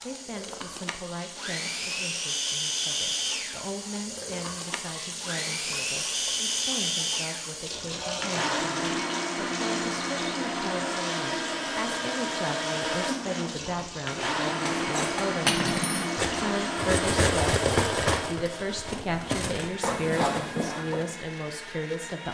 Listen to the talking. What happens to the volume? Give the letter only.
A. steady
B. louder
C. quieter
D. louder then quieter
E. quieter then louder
B.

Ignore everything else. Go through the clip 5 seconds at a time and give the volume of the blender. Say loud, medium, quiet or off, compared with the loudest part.
loud, loud, loud, loud, medium.